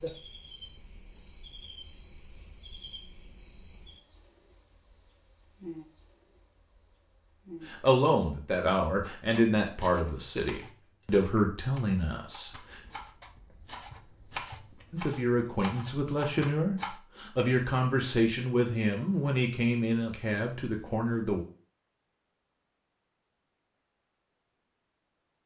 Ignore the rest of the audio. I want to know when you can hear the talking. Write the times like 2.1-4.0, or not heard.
7.7-12.8, 14.9-21.4.